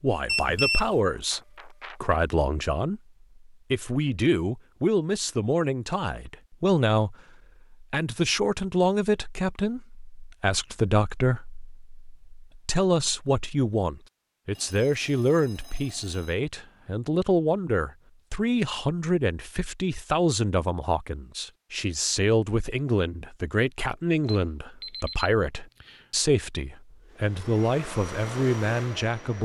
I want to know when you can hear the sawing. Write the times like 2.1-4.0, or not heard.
not heard.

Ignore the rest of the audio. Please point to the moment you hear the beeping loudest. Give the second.
1 s.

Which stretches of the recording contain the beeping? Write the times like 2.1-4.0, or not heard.
0.2-2.2, 14.6-16.4, 24.2-26.1.